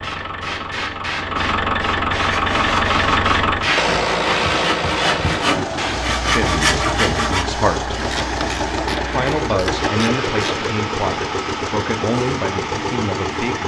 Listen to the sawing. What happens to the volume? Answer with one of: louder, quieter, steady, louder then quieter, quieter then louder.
louder.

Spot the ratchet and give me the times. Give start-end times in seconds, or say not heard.
7.9-10.7.